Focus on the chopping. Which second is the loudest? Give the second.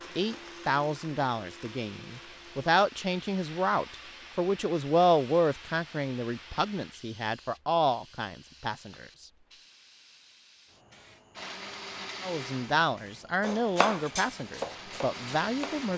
14 s.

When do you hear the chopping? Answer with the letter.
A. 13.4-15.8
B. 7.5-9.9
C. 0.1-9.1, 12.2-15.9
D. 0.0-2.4
A.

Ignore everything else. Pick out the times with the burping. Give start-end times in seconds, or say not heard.
not heard.